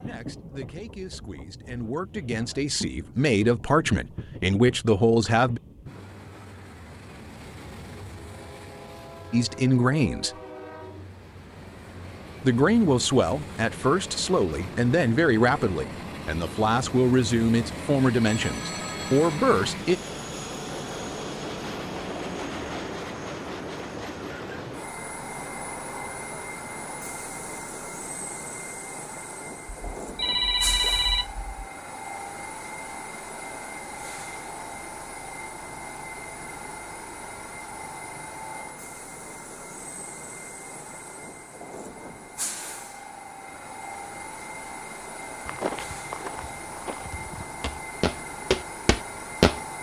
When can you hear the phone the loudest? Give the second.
31 s.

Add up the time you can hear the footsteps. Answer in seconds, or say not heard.
4 s.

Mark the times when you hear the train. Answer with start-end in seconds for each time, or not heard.
0.0-49.7.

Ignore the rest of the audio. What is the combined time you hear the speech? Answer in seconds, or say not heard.
14 s.